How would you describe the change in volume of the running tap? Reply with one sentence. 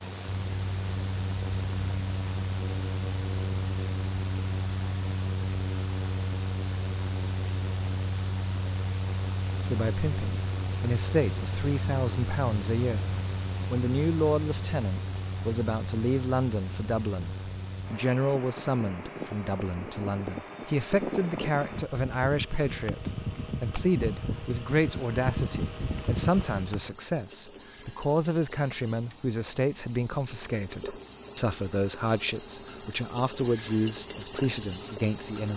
The volume of the running tap goes up.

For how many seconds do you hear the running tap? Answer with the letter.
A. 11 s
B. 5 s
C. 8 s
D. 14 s
A.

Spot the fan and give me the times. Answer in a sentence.
The fan can be heard from 0.0 to 26.9 s.